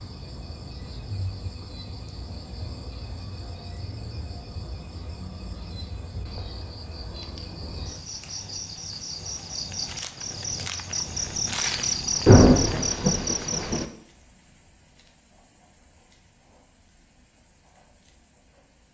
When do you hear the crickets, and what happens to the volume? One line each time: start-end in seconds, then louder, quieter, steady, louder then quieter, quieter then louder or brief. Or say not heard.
0.0-18.8 louder then quieter.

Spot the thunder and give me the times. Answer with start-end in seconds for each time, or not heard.
12.2-13.8.